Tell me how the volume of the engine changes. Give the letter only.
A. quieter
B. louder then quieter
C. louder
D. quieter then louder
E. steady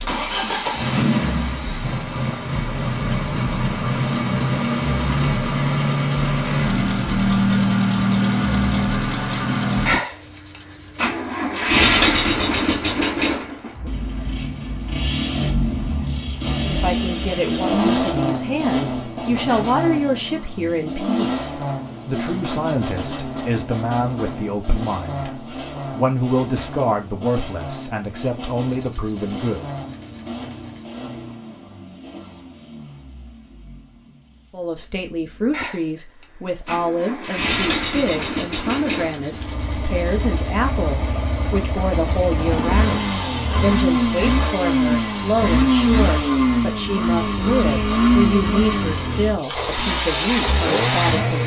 D.